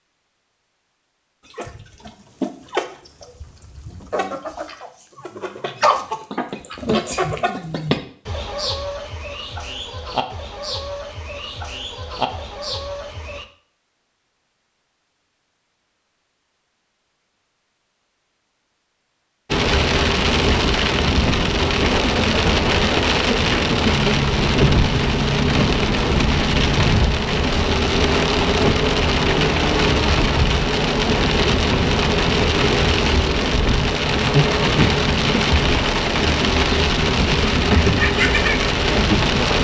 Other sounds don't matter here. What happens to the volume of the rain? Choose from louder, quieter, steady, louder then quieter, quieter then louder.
steady.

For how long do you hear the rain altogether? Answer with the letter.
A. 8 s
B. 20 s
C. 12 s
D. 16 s
B.